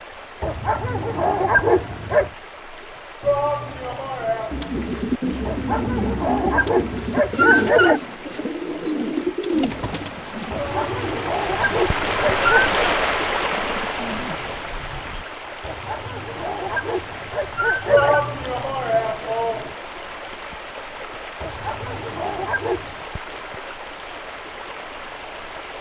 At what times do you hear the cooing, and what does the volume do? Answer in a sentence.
You can hear the cooing from 4.5 to 15.2 s, getting quieter.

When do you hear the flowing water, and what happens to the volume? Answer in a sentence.
You can hear the flowing water from 0.0 to 25.7 s, getting louder then quieter.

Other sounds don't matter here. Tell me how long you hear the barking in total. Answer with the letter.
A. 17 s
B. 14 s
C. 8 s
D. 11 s
D.